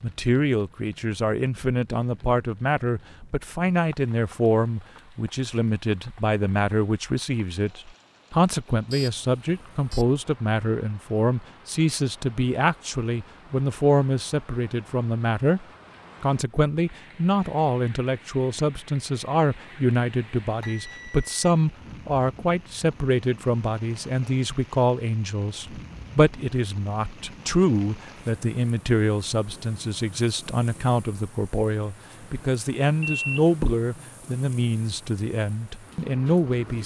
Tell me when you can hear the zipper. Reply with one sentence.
The zipper can't be heard in this clip.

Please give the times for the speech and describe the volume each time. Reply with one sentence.
The speech can be heard from 0.0 to 36.8 s, at a steady volume.